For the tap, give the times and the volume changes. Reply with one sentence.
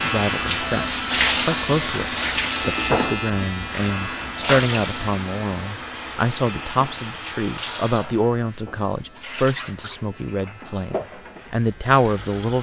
You can hear the tap from 0.0 to 12.5 s, getting quieter.